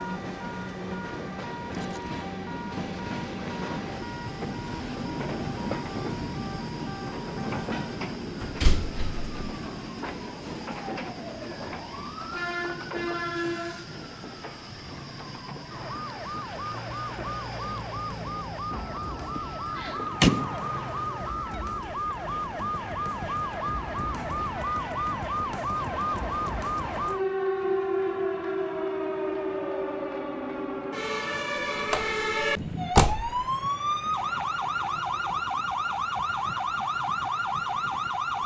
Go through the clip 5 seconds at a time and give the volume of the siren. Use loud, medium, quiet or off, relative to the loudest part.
quiet, quiet, medium, medium, loud, loud, loud, loud.